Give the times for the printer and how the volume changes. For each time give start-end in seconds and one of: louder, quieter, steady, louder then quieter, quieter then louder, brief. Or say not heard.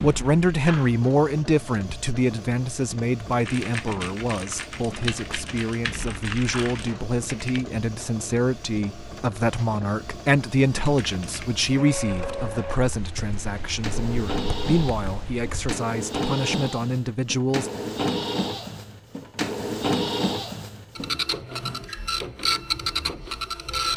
0.0-23.9 louder.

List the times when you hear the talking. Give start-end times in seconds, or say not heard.
0.0-17.7.